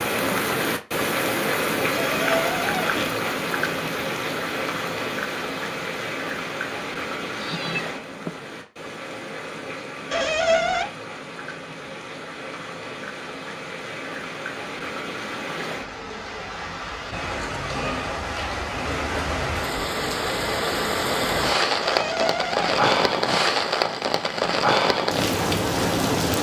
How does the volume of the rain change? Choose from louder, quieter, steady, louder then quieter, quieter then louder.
quieter then louder.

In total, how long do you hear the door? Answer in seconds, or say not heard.
3 s.